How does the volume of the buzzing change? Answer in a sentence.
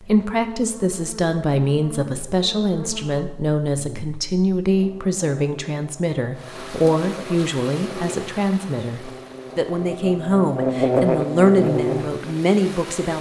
The loudness of the buzzing goes up.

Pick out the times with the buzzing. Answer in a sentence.
You can hear the buzzing from 0.0 to 13.1 s.